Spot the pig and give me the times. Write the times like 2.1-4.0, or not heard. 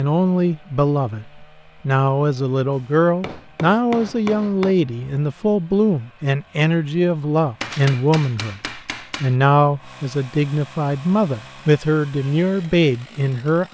not heard.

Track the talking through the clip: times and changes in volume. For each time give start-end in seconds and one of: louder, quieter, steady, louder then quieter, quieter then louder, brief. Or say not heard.
0.0-13.6 steady.